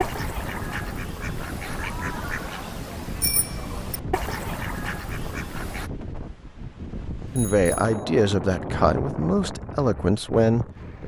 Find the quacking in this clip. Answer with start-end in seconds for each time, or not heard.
0.0-5.9.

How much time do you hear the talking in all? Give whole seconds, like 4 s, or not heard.
4 s.